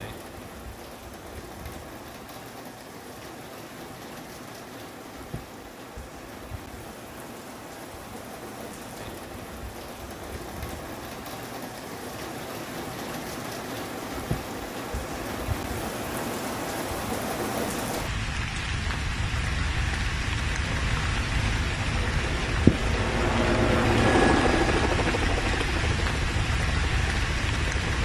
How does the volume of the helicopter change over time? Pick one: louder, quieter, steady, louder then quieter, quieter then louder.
louder then quieter.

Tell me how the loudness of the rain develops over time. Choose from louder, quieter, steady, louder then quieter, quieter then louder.
louder.